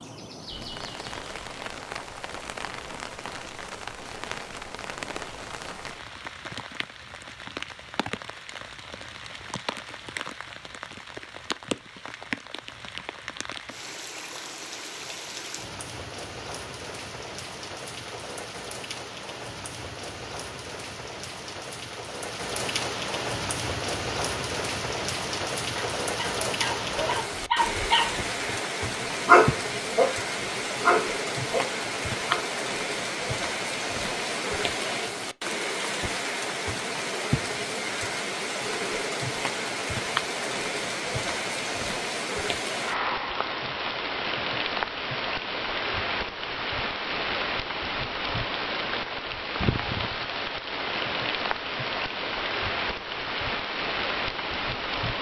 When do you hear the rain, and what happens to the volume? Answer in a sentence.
You can hear the rain from 0.0 to 55.1 s, getting louder.